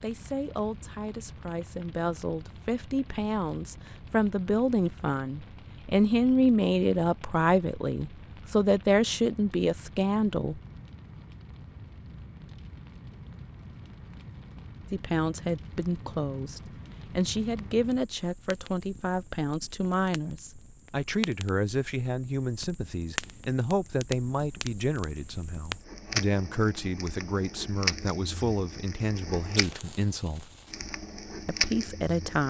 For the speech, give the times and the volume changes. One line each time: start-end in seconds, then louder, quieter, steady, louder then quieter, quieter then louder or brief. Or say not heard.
0.0-10.6 louder
14.9-30.5 steady
31.4-32.4 brief.